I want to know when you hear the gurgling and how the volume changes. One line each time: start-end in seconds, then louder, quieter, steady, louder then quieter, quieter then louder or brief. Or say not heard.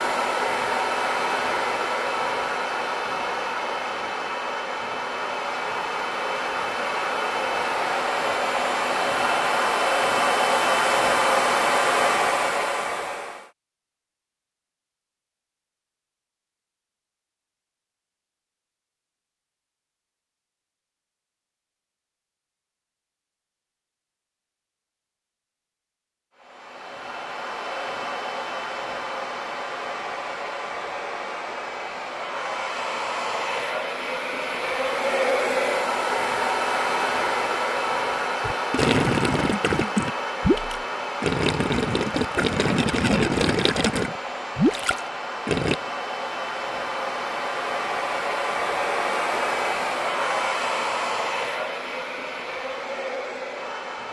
38.4-45.8 steady.